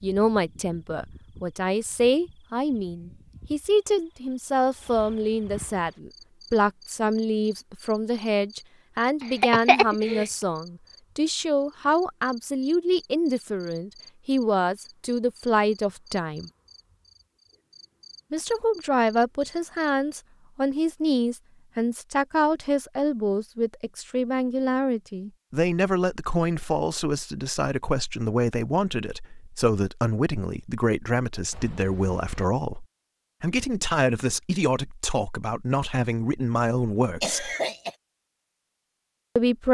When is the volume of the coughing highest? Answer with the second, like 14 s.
10 s.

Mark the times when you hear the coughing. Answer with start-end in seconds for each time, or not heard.
9.4-10.2, 37.2-38.0.